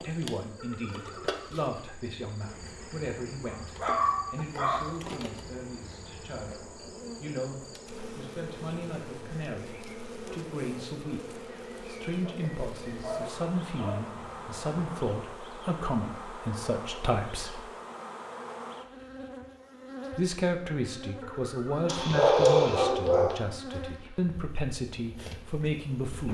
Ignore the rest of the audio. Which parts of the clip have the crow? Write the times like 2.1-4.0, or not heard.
not heard.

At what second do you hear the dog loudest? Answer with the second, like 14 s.
22 s.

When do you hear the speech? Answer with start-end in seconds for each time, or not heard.
0.0-17.6, 20.1-26.2.